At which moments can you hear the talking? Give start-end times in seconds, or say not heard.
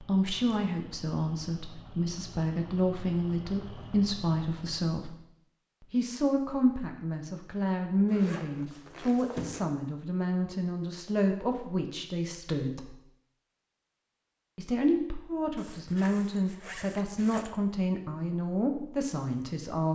0.0-5.2, 5.8-12.9, 14.6-19.9.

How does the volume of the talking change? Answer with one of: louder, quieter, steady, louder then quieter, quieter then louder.
steady.